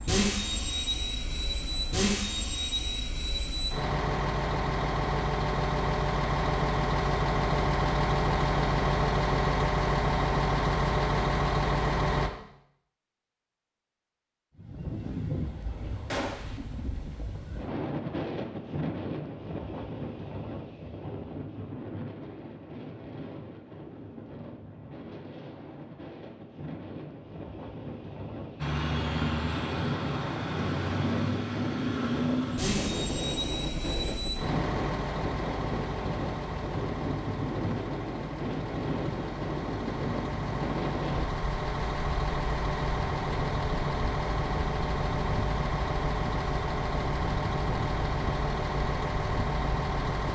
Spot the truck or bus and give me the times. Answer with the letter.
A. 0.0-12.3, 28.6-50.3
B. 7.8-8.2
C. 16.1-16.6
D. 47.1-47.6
A.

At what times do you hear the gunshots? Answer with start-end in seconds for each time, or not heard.
16.1-16.6.